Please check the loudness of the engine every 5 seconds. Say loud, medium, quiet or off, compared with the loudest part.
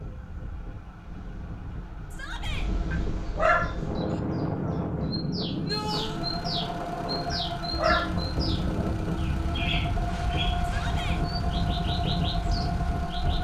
quiet, loud, loud.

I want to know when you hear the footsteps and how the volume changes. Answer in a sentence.
The footsteps can't be heard in this clip.